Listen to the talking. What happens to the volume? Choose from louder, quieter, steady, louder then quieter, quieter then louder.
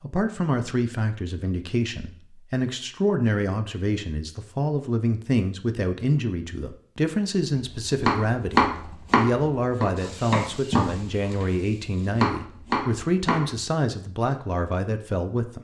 steady.